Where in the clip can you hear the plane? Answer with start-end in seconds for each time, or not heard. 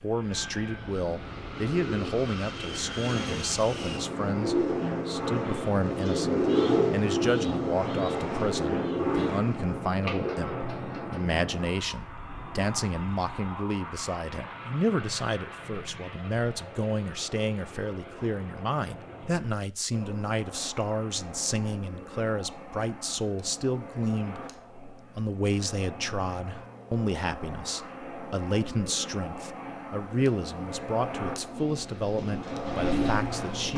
0.0-33.7.